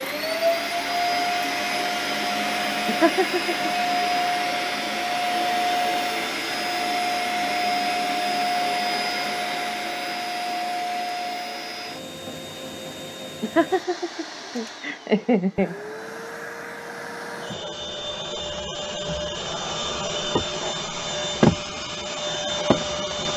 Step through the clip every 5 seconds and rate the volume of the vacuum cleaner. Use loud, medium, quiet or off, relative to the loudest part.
loud, loud, medium, medium, loud.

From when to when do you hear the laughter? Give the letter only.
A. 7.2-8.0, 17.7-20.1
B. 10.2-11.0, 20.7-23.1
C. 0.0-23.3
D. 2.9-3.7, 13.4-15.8
D.